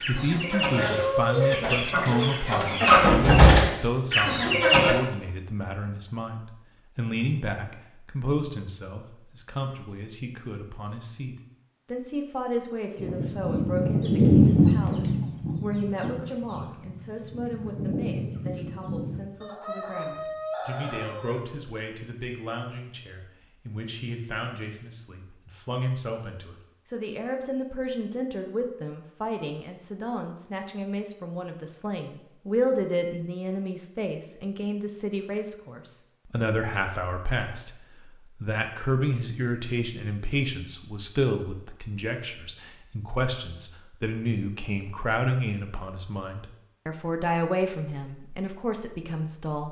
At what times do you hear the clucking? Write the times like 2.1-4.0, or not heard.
0.0-5.0, 12.9-21.4.